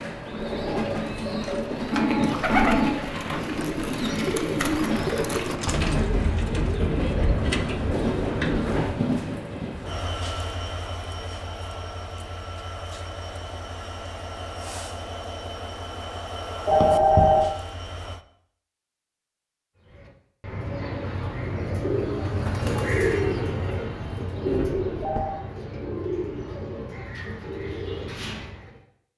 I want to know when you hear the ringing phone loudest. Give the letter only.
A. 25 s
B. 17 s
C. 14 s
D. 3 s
B.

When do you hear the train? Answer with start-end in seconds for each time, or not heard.
0.0-18.2.